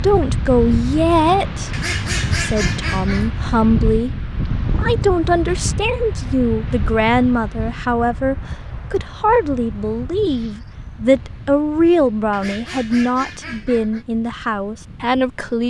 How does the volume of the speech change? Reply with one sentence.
The volume of the speech stays about the same.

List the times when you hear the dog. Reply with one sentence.
The dog can't be heard in this clip.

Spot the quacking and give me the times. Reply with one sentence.
The quacking can be heard from 1.7 to 3.3 s and from 12.3 to 14.1 s.